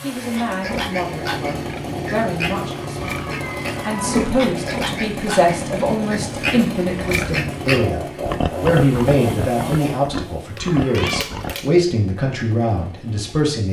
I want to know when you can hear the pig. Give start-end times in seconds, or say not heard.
0.1-11.7.